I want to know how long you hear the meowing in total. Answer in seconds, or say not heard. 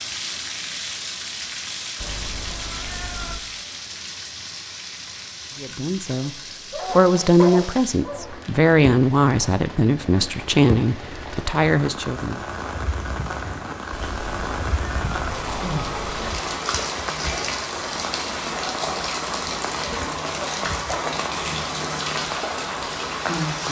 4 s.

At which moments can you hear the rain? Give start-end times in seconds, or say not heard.
0.0-23.6.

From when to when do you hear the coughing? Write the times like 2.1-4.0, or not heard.
not heard.